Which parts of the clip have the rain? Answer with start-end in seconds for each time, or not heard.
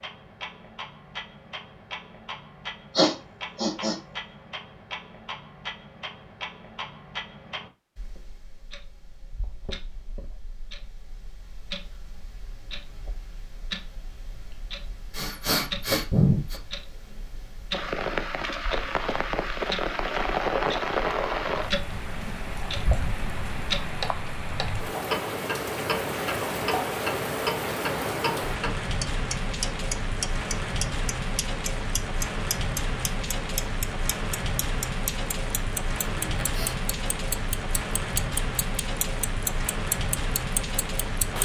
17.7-41.4.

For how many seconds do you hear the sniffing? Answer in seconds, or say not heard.
3 s.